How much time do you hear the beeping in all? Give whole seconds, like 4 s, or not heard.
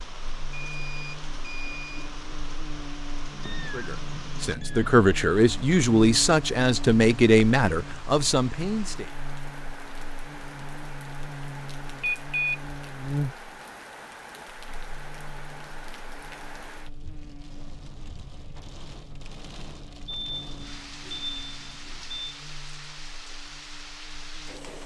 4 s.